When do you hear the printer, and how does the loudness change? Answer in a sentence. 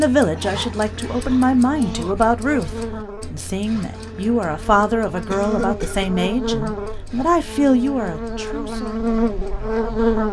You can't hear the printer here.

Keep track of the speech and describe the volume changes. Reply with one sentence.
The loudness of the speech stays about the same.